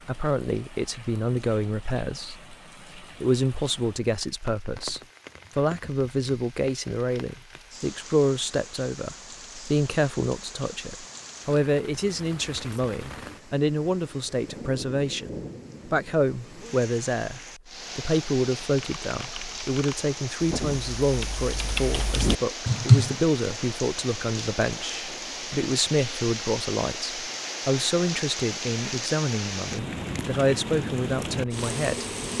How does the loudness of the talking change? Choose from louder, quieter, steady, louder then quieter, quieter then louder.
steady.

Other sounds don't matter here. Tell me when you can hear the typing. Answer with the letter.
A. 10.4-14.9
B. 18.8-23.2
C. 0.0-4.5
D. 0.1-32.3
B.